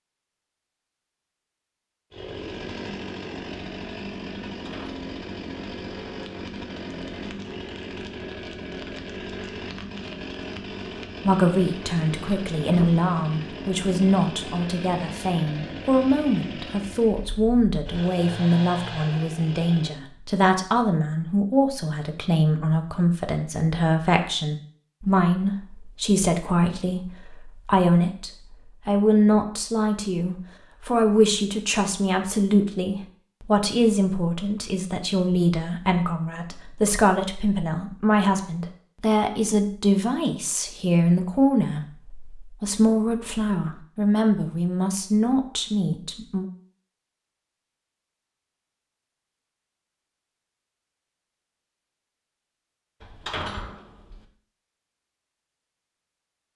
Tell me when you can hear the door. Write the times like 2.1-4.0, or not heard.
4.5-5.0, 53.0-54.2.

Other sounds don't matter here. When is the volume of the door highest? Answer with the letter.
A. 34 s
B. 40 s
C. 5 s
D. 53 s
D.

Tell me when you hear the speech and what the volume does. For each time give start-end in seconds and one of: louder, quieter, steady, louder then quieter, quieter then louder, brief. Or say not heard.
11.2-46.5 steady.